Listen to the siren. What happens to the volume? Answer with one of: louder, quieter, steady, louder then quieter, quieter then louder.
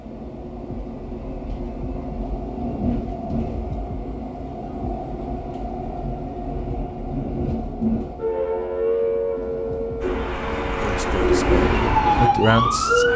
quieter then louder.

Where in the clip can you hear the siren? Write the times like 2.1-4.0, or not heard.
8.2-13.1.